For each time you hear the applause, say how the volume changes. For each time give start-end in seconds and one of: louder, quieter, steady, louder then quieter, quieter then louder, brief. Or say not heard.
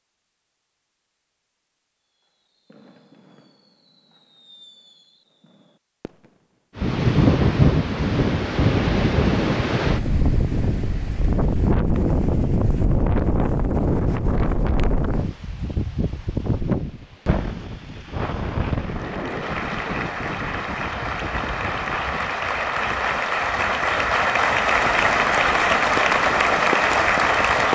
18.7-27.7 louder.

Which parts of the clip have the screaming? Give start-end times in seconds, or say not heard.
not heard.